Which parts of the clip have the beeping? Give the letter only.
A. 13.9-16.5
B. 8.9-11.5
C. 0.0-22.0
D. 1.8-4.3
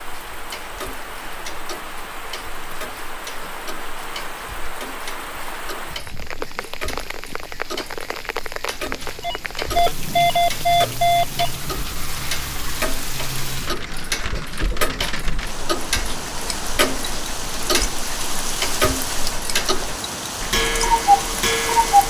B.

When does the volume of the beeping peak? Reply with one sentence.
The volume of the beeping peaks at 10 seconds.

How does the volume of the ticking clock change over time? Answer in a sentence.
The loudness of the ticking clock goes up.